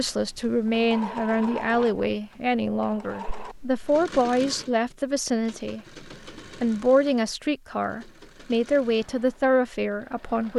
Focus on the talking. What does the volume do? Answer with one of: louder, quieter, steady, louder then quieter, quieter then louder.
steady.